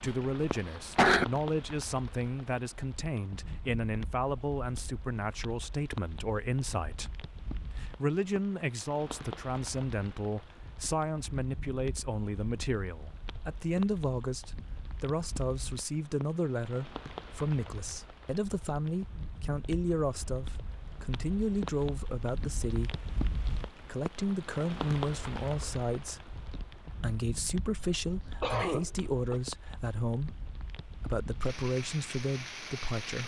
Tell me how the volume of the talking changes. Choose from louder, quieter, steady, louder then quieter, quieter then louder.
steady.